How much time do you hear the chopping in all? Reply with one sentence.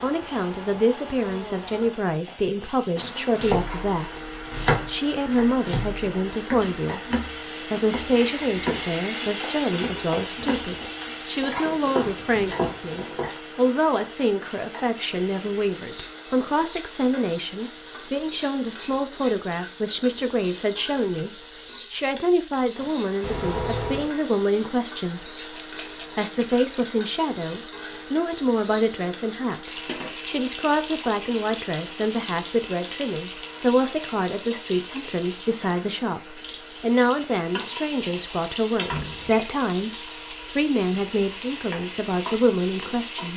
The chopping can be heard for 10 seconds in total.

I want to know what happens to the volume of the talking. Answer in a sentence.
The volume of the talking stays about the same.